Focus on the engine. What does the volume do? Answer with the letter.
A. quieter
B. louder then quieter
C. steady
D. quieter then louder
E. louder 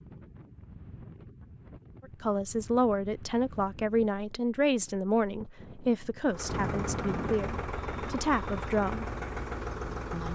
C.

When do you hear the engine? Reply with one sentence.
You can hear the engine from 6.2 to 10.3 s.